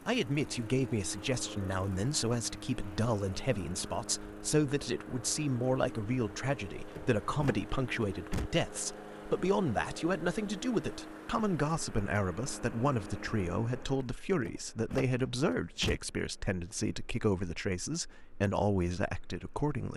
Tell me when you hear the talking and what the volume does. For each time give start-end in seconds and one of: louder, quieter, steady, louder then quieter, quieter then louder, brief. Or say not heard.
0.1-19.9 steady.